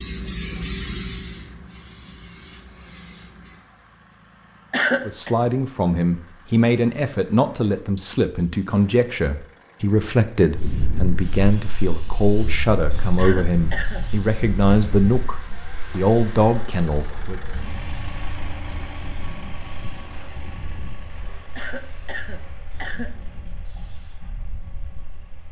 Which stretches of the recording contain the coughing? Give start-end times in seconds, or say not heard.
4.7-5.3, 13.2-14.1, 21.6-23.1.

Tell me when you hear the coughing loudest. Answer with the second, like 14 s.
5 s.